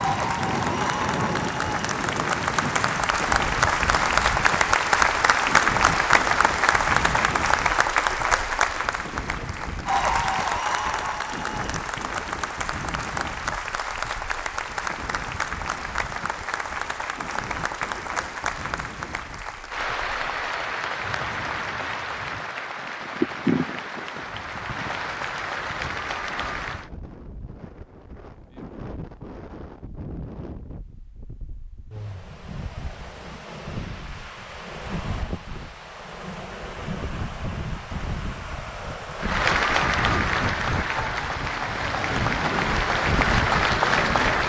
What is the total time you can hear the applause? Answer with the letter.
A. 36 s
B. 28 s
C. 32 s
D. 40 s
C.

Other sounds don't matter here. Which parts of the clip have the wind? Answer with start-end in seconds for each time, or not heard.
0.0-44.4.